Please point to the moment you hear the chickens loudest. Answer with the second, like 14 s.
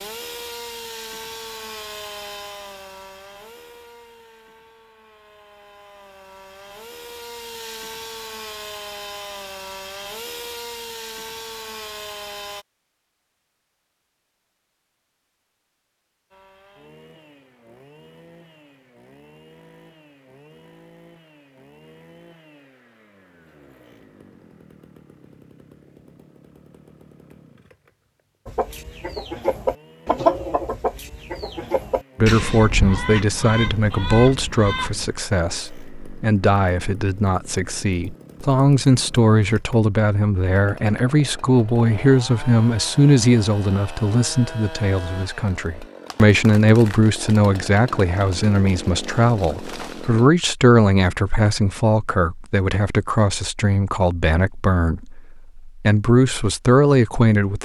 30 s.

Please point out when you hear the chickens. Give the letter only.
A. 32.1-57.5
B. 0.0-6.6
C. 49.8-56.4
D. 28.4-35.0
D.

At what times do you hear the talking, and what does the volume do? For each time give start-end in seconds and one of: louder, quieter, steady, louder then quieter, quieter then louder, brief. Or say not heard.
32.1-57.5 steady.